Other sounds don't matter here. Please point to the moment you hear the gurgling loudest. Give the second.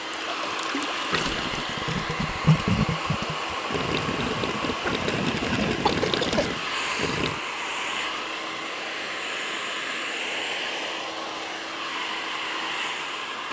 3 s.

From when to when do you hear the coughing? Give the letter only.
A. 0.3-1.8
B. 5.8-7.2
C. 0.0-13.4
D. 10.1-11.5
B.